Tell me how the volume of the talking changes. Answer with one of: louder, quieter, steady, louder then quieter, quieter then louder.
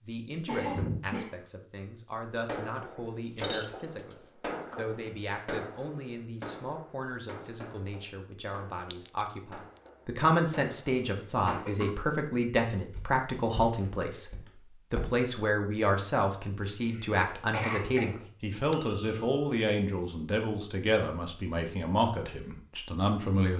louder.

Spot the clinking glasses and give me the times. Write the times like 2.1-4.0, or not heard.
3.2-4.2, 8.9-9.8, 18.7-19.2.